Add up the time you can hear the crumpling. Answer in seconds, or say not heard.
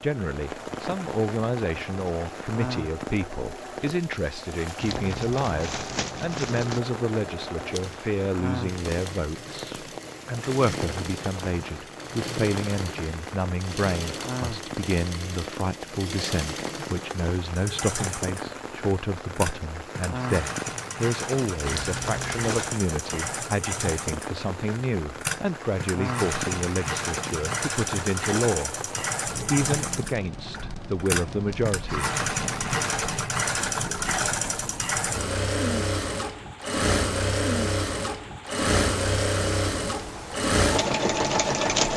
3 s.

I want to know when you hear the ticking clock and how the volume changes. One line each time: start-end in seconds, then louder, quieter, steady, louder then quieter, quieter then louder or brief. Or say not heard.
not heard.